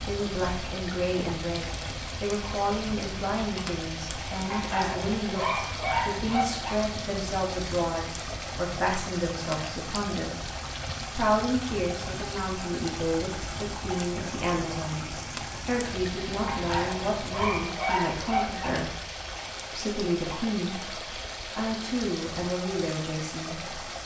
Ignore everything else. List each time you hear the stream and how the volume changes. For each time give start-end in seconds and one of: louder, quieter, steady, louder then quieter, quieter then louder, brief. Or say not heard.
0.0-24.0 steady.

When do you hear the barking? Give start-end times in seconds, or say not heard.
4.5-6.8, 16.4-18.8.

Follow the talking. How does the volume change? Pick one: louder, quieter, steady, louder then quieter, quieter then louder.
steady.